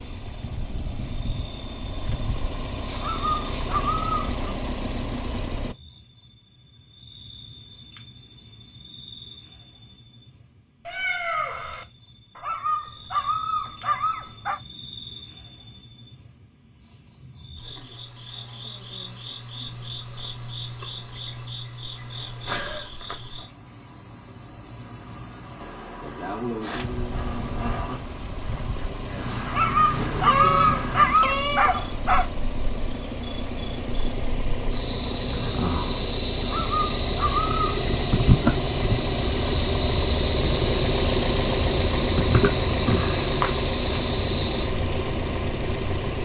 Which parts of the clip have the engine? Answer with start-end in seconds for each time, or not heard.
0.0-5.8, 26.6-46.2.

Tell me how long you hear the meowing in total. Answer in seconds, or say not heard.
3 s.